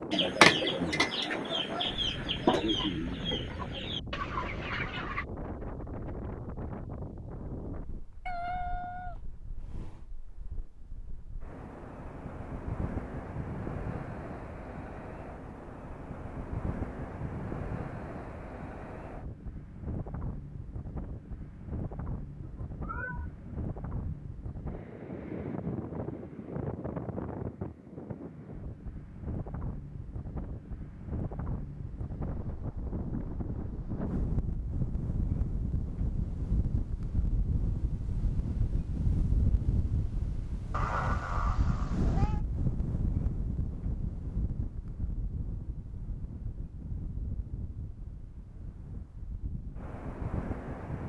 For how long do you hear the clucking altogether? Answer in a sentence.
The clucking can be heard for 5 seconds in total.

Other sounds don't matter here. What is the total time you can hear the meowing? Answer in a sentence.
You can hear the meowing for 5 seconds altogether.